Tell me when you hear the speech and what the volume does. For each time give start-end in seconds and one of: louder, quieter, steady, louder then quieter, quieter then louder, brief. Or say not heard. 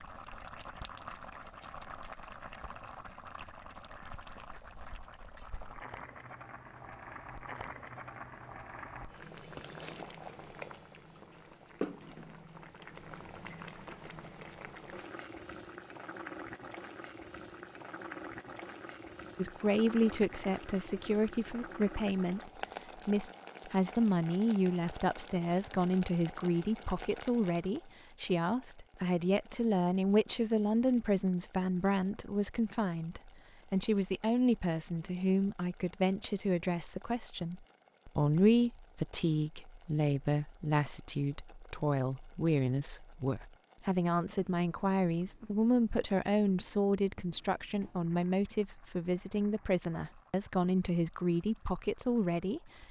19.4-52.7 steady.